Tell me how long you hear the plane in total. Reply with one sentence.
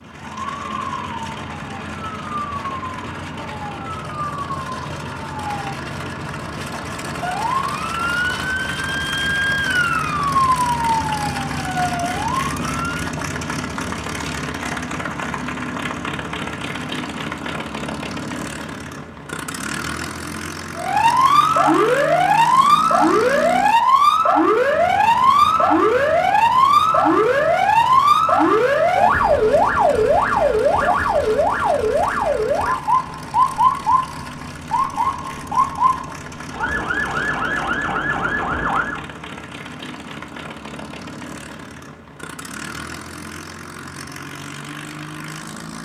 The plane can be heard for 46 seconds in total.